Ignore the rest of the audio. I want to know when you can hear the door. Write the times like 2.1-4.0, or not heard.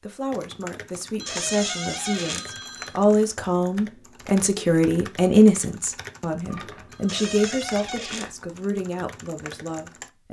1.2-2.5, 7.0-8.3.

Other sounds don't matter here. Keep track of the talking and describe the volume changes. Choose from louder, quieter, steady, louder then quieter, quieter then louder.
louder then quieter.